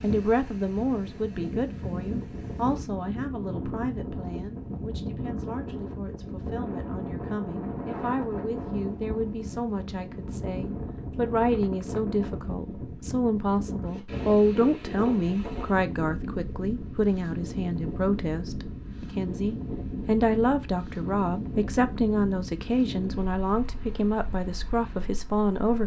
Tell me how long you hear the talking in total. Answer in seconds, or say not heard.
26 s.